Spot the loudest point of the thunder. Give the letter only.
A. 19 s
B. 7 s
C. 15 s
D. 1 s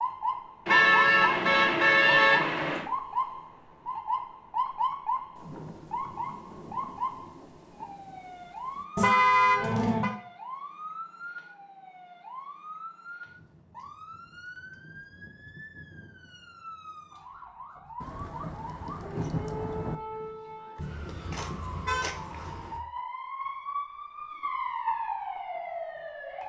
A.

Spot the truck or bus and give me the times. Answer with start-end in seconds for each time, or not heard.
not heard.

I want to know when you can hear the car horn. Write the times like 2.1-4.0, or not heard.
0.7-2.9, 8.9-10.1, 20.8-22.8.